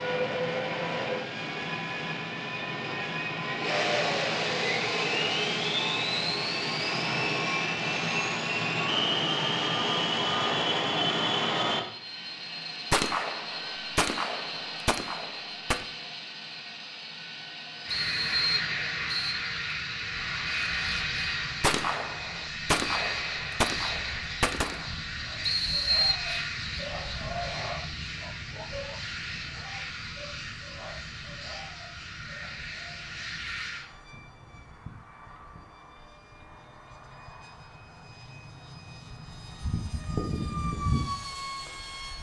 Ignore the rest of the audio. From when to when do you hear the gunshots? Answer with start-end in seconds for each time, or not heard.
12.9-15.8, 21.6-24.9.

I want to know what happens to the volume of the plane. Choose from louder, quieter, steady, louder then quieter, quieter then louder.
quieter.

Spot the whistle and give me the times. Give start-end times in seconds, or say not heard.
17.9-19.4, 25.4-26.2.